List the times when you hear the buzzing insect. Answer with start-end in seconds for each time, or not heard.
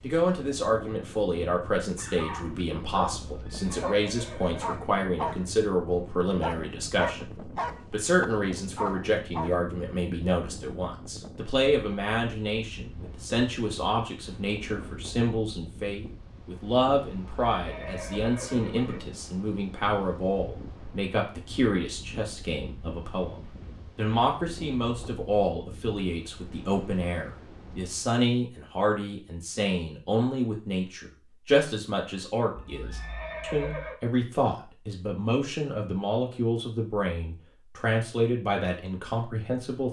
not heard.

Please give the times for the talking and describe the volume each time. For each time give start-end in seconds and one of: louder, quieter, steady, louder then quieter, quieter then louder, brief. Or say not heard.
0.0-39.8 steady.